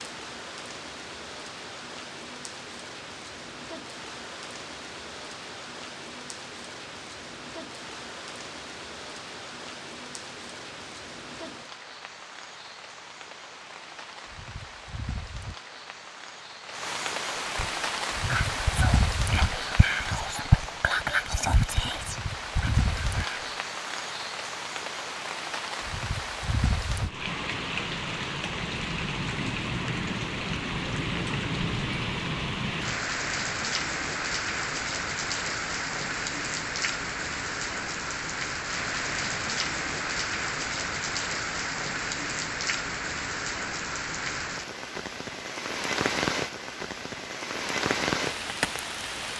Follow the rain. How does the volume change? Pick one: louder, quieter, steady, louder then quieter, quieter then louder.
louder.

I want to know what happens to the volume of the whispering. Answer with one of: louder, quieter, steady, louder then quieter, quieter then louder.
louder then quieter.